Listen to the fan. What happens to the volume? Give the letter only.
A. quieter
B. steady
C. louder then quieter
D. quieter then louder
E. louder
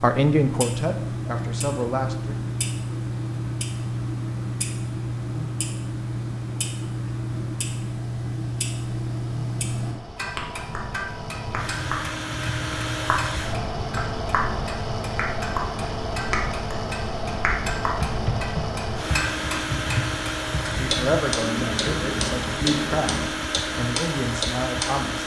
E.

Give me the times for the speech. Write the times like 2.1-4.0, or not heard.
0.0-2.4, 20.8-25.2.